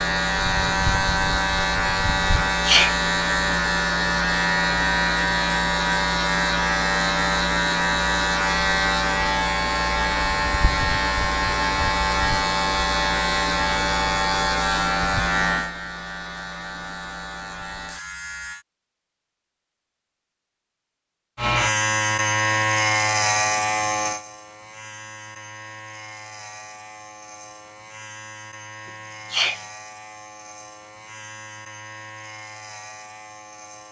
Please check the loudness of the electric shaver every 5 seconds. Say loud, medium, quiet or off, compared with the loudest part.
loud, loud, loud, medium, loud, quiet, quiet.